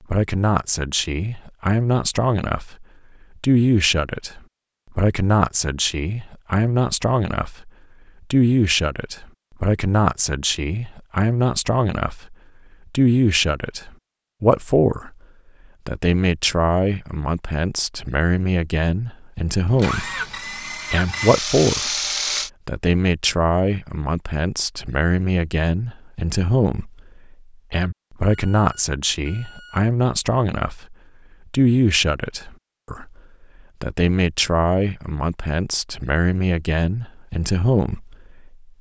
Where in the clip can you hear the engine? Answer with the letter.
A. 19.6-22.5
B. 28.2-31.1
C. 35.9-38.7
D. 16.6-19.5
A.